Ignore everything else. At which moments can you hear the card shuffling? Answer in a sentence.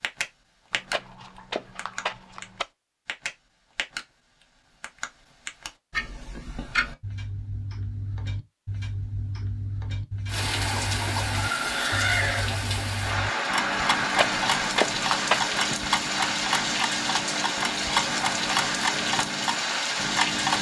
You can hear the card shuffling from 0.7 to 2.6 s and from 14.0 to 15.4 s.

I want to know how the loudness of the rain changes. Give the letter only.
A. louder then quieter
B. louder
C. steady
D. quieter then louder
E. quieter
C.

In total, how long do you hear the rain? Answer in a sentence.
The rain can be heard for 10 seconds in total.